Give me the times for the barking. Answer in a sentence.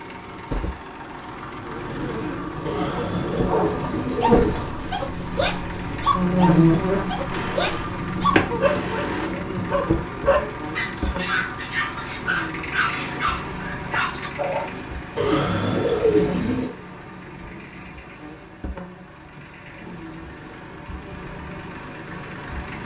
You can hear the barking from 2.8 to 14.7 s.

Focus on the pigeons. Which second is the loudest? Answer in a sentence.
The volume of the pigeons peaks at 16 seconds.